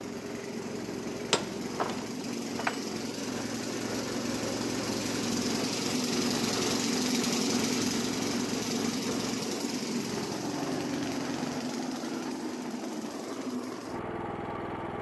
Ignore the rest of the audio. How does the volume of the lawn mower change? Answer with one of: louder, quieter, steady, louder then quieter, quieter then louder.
louder then quieter.